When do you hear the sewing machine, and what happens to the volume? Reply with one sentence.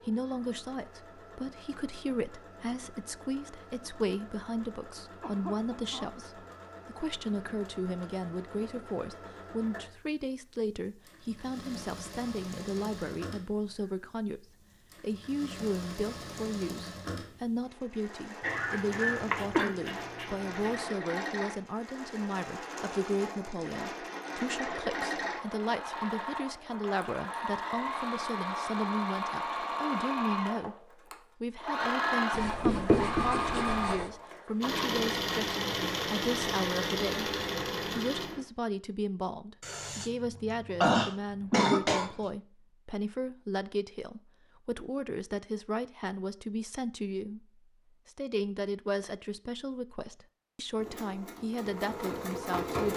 The sewing machine can be heard from 0.0 to 38.5 s, getting louder; and briefly from 50.8 to 52.9 s.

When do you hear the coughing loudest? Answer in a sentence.
The volume of the coughing peaks at 41 seconds.